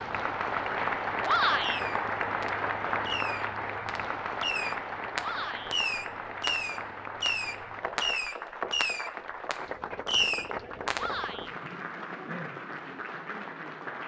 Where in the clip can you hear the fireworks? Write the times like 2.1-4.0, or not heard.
1.4-11.2.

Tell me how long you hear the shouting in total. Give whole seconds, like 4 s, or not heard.
2 s.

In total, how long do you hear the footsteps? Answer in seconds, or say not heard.
not heard.